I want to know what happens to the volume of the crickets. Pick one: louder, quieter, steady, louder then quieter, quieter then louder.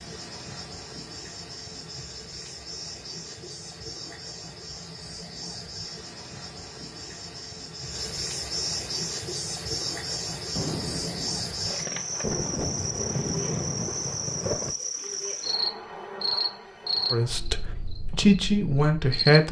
louder.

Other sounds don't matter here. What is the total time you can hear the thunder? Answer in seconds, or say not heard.
4 s.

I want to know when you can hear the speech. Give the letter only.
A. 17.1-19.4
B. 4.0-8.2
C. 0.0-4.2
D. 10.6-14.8
A.